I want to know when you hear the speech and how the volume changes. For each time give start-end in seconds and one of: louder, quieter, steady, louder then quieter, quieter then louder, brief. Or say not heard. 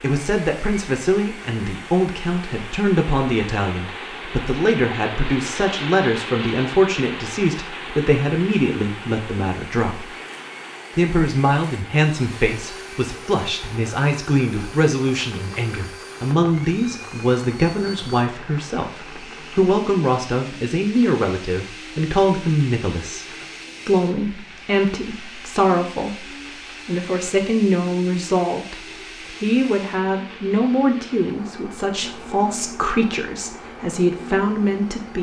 0.0-10.1 steady
10.9-35.1 steady.